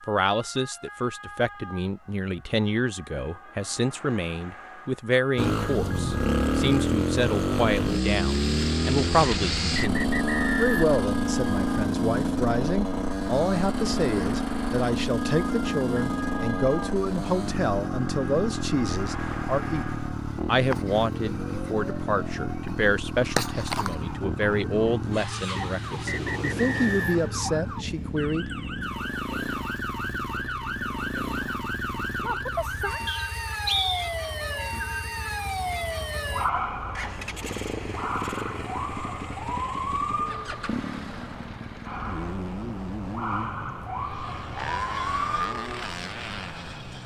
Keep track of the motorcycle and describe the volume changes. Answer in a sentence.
The loudness of the motorcycle goes down.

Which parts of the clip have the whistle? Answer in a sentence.
You can hear the whistle from 9.2 to 10.9 s, from 25.6 to 27.3 s and from 33.0 to 34.0 s.